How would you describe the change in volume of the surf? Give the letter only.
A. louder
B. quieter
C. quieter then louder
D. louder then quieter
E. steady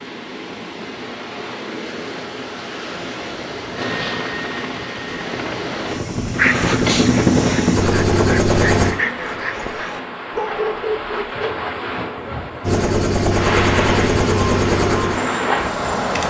A.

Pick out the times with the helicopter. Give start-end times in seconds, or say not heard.
3.8-8.9, 12.6-15.9.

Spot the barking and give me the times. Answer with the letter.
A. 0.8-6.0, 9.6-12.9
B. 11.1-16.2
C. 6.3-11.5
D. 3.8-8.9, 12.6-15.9
C.